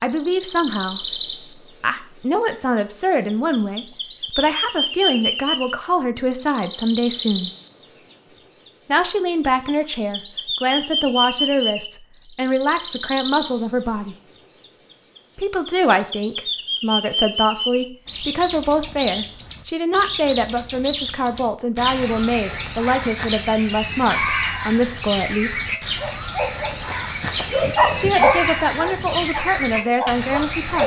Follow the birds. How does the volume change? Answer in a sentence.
The loudness of the birds stays about the same.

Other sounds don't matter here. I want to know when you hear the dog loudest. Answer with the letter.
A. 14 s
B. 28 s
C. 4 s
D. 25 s
B.